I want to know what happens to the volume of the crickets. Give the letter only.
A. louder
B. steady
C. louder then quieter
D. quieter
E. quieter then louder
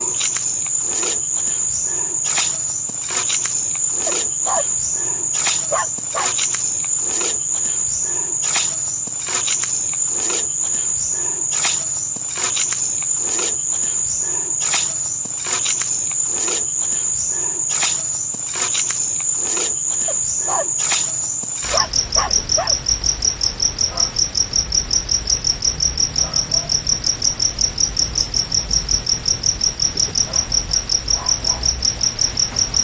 B.